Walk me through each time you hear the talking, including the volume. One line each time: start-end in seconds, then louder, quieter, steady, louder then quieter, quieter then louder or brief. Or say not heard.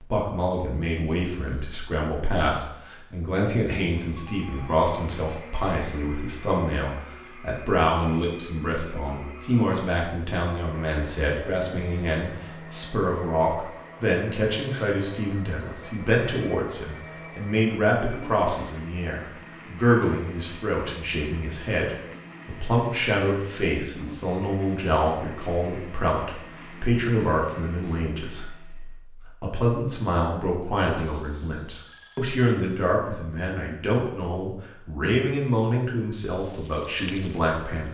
0.0-37.8 steady.